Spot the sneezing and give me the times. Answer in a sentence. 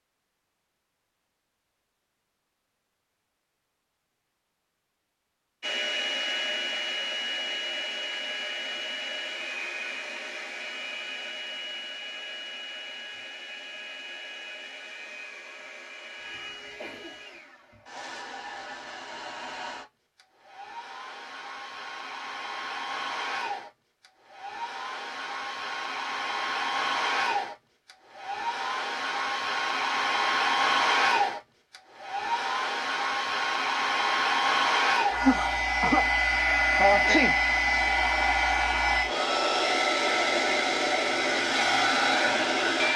You can hear the sneezing from 16.2 to 17.1 s, from 35.1 to 36.1 s and from 36.8 to 37.4 s.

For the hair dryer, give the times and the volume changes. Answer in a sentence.
The hair dryer can be heard from 5.6 to 42.9 s, getting quieter then louder.